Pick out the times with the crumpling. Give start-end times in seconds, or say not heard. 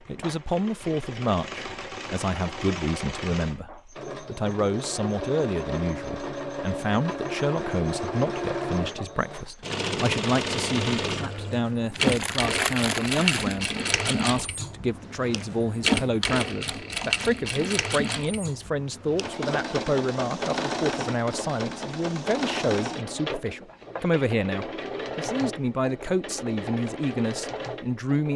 11.9-13.6.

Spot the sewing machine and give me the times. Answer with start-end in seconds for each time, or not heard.
0.0-28.3.